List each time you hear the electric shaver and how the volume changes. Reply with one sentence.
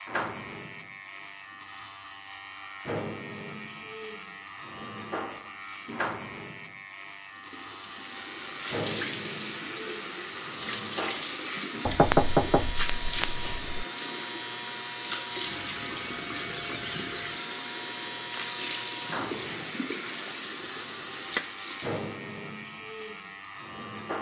You can hear the electric shaver from 0.0 to 24.1 s, at a steady volume.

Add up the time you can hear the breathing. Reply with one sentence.
The breathing can't be heard in this clip.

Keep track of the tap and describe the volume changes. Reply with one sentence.
The volume of the tap stays about the same.